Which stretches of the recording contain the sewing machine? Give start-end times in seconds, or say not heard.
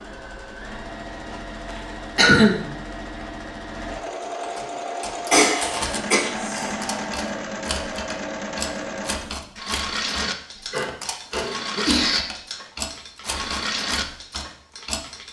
0.0-15.2.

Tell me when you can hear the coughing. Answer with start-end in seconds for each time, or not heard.
2.1-2.7, 5.2-6.8, 10.2-12.2.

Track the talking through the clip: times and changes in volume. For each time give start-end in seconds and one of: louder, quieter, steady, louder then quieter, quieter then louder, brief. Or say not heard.
not heard.